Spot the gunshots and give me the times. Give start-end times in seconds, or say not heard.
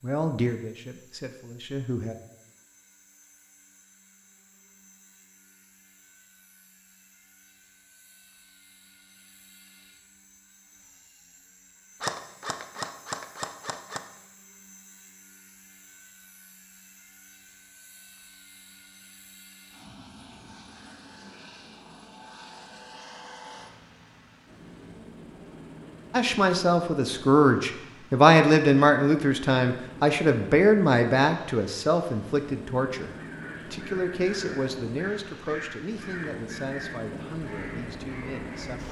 12.0-14.0.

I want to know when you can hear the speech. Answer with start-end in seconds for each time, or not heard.
0.0-2.1, 26.1-33.1, 33.7-38.8.